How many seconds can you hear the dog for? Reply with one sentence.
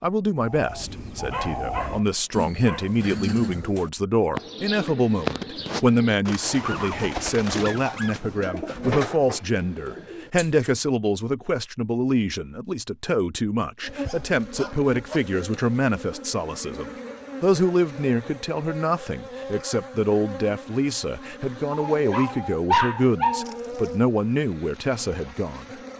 You can hear the dog for 6 seconds altogether.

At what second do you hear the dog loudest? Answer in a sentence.
The loudest moment of the dog is at 23 seconds.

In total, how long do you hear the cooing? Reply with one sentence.
You can hear the cooing for 10 seconds altogether.